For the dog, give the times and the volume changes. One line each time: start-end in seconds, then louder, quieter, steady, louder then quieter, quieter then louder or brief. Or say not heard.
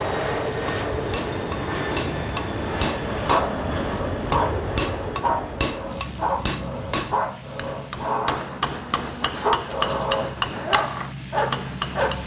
3.1-12.2 steady.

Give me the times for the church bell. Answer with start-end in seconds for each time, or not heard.
not heard.